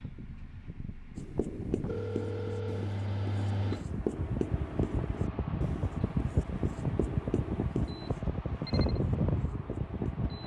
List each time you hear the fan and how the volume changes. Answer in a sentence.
The fan can be heard from 0.0 to 10.4 s, getting louder.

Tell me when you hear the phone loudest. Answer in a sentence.
The loudest moment of the phone is at 2 seconds.